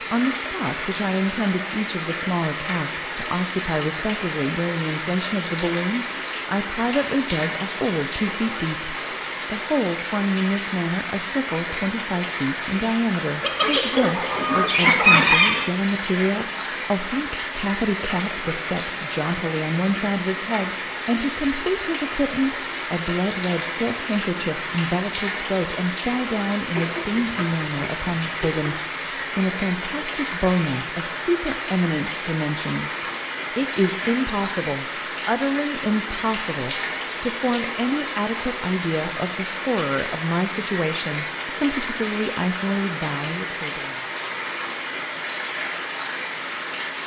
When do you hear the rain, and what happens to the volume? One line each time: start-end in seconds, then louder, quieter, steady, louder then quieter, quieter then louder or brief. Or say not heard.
0.0-47.0 steady.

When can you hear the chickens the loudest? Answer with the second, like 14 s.
15 s.